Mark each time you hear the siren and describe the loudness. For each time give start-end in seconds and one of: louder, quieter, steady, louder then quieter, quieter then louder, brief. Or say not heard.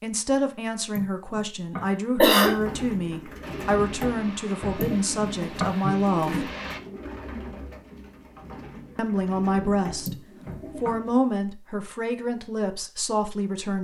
not heard.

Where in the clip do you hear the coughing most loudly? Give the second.
2 s.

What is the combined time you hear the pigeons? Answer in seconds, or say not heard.
9 s.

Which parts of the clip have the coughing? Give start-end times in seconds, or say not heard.
0.9-2.5, 4.8-5.8, 10.1-10.9.